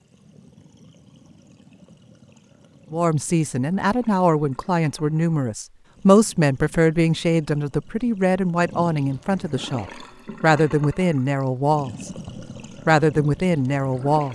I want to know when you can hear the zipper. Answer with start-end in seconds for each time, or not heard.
not heard.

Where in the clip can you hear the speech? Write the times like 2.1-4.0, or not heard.
2.9-14.3.